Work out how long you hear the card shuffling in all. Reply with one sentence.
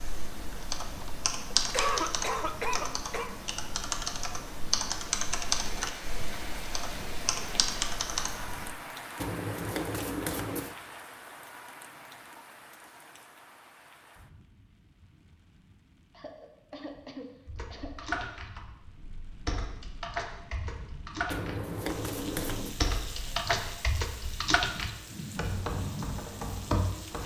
The card shuffling can be heard for 3 seconds in total.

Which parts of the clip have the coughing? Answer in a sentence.
You can hear the coughing from 1.0 to 3.3 s and from 16.1 to 18.2 s.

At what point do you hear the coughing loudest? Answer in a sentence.
The volume of the coughing peaks at 2 seconds.